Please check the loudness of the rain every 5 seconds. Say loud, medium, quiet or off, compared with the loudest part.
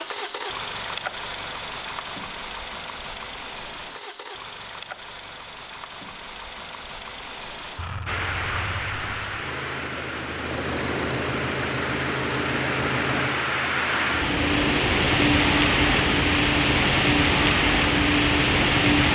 off, medium, medium, loud.